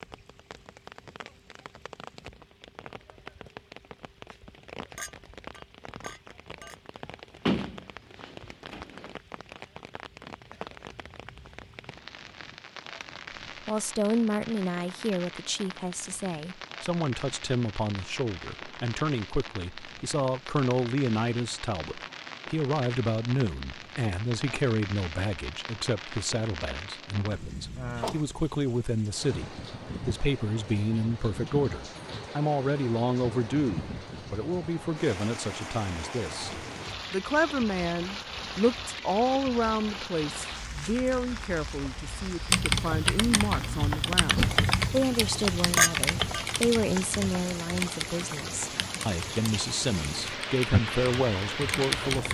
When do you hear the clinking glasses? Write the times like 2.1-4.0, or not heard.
5.0-6.8, 45.8-46.5.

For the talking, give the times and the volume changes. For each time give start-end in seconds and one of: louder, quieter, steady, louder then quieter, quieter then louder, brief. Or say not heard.
13.7-52.2 steady.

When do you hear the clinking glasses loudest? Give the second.
46 s.